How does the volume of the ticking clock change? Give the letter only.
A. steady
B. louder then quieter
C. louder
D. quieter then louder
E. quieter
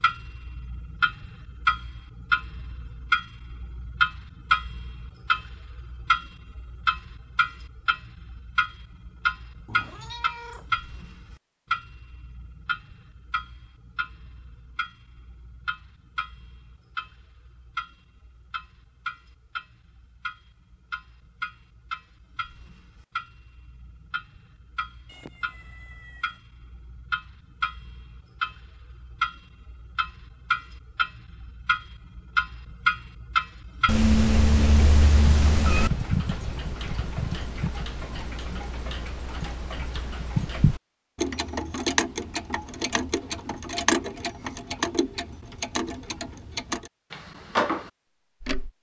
D.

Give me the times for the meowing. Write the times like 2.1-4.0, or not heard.
9.7-10.7, 25.1-26.4, 33.9-35.9.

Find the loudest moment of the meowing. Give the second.
34 s.